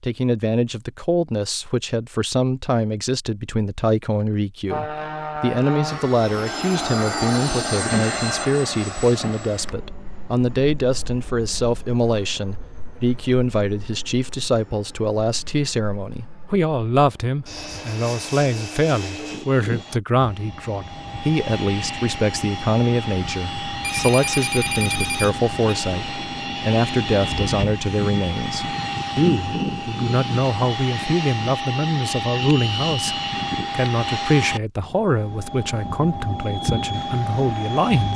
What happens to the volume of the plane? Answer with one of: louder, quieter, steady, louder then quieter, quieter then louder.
quieter then louder.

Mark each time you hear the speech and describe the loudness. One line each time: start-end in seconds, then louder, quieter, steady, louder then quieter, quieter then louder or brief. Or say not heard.
0.0-38.1 steady.